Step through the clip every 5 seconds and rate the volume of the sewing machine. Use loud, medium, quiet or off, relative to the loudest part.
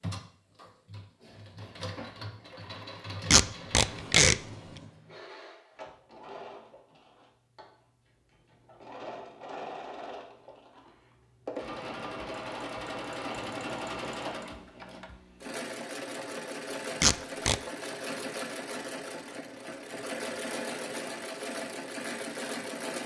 medium, medium, loud, loud, loud.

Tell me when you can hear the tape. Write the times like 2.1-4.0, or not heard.
3.3-4.3, 17.0-17.6.